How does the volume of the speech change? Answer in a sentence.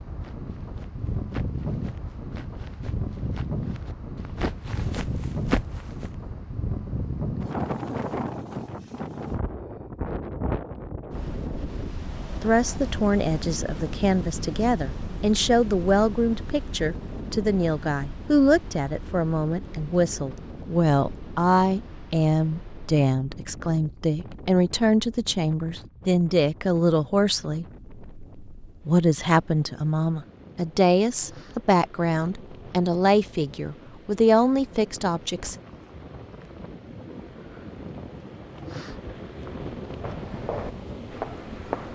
The loudness of the speech stays about the same.